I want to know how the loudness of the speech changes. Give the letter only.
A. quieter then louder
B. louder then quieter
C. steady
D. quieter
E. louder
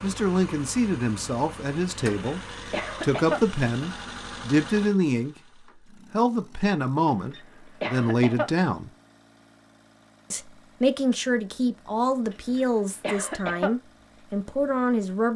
C.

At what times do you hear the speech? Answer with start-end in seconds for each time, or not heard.
0.0-8.9, 10.3-15.3.